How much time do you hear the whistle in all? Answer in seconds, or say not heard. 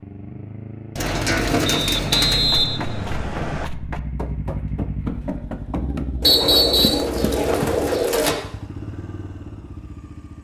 3 s.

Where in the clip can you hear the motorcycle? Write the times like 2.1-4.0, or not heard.
0.0-10.3.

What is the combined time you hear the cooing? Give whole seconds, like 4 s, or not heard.
4 s.